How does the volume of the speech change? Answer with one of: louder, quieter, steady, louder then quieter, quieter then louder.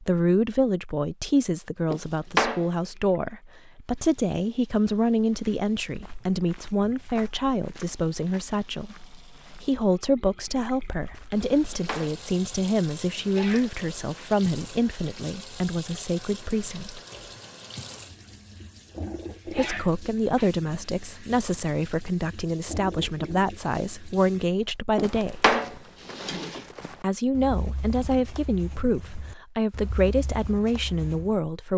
steady.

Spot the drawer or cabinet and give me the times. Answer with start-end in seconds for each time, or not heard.
1.9-2.6, 11.4-12.2, 24.9-26.6.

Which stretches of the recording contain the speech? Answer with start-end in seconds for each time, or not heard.
0.0-17.0, 19.4-25.6, 27.0-31.7.